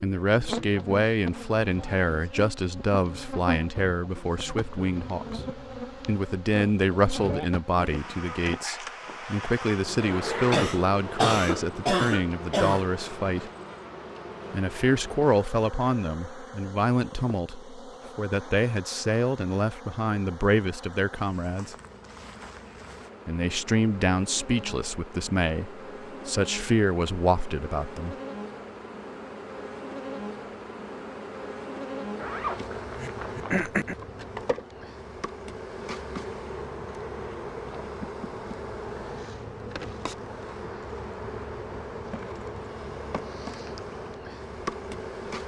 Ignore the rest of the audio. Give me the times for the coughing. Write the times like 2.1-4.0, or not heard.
10.5-12.8, 33.0-34.0.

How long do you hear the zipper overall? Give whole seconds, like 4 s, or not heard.
2 s.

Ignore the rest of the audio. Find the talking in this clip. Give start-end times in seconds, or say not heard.
0.0-13.5, 14.5-21.8, 23.2-28.1.